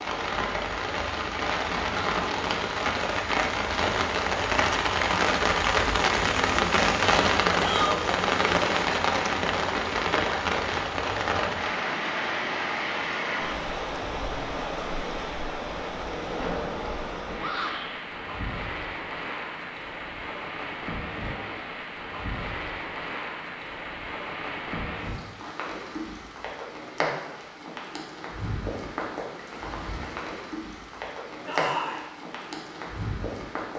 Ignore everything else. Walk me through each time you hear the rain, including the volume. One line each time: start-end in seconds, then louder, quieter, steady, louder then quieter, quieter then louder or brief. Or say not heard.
0.0-33.7 quieter.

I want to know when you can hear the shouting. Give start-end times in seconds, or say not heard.
7.5-8.0, 17.4-17.9, 31.4-32.0.